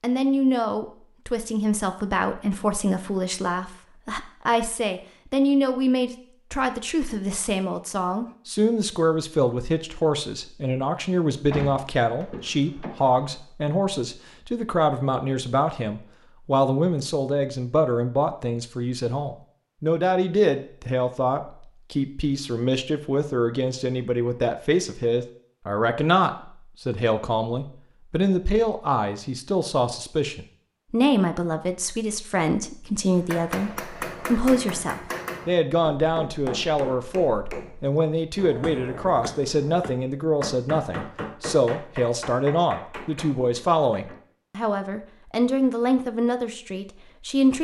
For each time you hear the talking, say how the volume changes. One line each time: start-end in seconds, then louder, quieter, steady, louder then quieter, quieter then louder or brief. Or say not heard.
0.0-47.5 steady.